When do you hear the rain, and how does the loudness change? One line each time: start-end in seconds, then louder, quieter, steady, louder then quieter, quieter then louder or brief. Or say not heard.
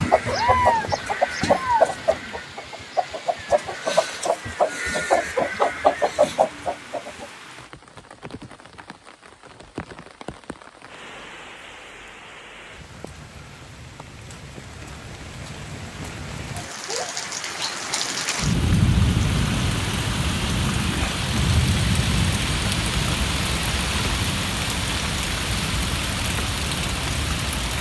0.0-27.7 louder.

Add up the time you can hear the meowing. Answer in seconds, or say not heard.
2 s.